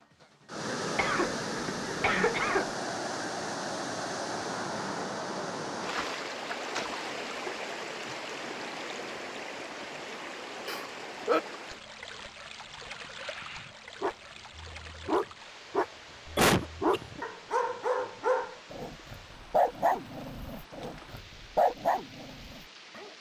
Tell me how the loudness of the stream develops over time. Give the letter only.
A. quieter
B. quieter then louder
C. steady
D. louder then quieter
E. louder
A.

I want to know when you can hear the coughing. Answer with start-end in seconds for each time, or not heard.
0.9-2.8, 10.7-11.4, 16.2-17.2.